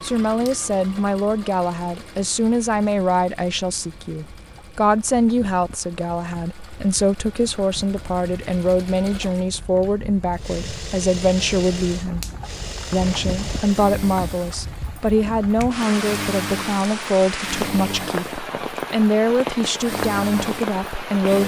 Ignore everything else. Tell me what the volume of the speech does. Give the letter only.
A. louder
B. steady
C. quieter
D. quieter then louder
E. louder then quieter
B.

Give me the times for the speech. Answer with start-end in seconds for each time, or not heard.
0.0-12.2, 12.9-21.4.